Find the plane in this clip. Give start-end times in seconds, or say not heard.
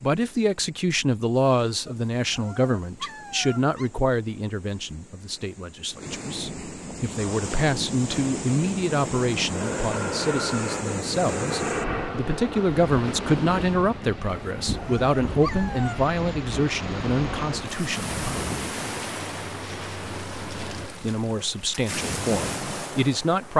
9.5-20.9.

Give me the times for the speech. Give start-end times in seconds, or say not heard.
0.0-18.4, 21.0-23.5.